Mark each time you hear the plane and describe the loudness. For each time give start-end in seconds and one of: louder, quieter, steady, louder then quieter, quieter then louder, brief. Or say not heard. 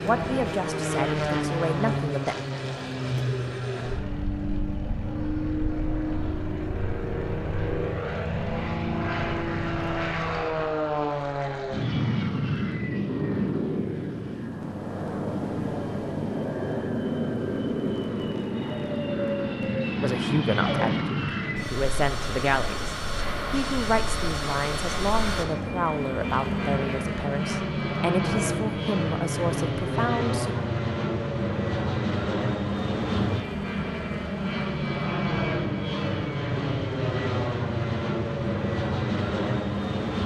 0.0-40.2 steady.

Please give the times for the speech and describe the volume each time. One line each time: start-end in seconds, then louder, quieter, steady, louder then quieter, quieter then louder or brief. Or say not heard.
0.0-2.4 brief
20.0-30.6 steady.